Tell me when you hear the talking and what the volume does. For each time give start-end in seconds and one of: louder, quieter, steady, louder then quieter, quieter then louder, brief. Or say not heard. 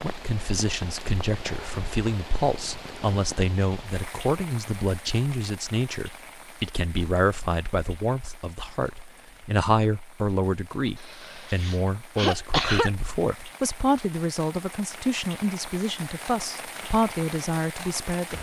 0.0-18.3 steady.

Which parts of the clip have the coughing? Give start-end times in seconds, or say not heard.
11.0-12.9.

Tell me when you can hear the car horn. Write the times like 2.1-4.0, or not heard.
not heard.